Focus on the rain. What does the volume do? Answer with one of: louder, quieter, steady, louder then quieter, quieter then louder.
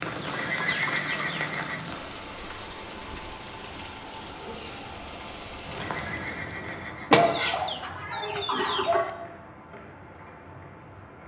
quieter.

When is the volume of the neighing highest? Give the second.
1 s.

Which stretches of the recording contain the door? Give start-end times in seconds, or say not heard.
not heard.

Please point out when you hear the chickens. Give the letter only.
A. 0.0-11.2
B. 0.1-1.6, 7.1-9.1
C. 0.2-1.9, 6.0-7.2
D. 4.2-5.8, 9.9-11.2
B.